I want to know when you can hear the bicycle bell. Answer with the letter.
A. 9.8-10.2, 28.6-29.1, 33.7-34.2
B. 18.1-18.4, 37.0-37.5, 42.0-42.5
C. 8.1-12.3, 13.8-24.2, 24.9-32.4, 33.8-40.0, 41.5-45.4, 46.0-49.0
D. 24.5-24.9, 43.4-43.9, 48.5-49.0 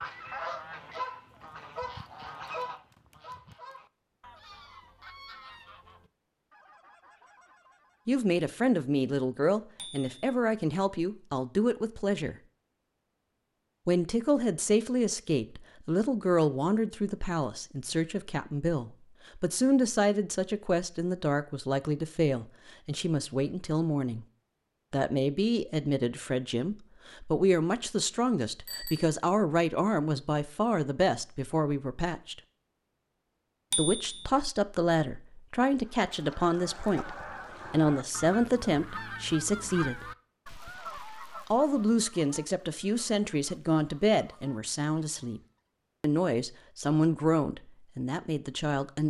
A.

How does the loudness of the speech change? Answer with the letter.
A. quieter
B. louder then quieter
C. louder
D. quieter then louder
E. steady
E.